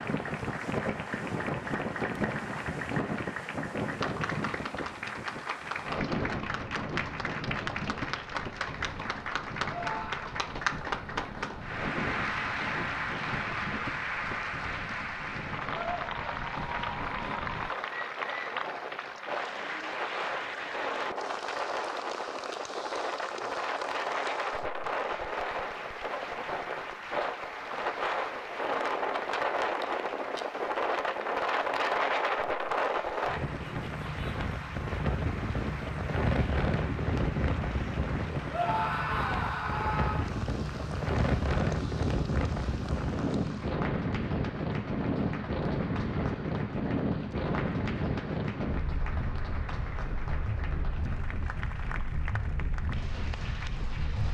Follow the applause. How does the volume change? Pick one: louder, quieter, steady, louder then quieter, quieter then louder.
quieter.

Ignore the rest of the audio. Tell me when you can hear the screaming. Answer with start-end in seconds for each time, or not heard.
9.7-10.3, 38.5-40.3.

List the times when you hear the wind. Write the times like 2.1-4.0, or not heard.
0.0-54.2.